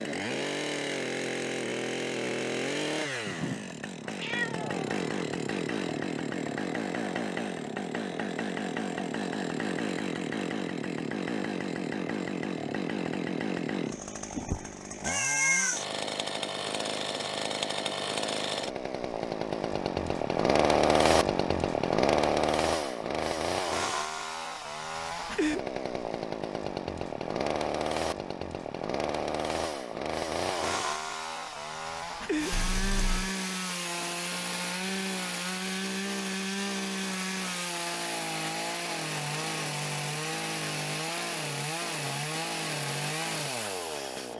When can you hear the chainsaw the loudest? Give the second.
21 s.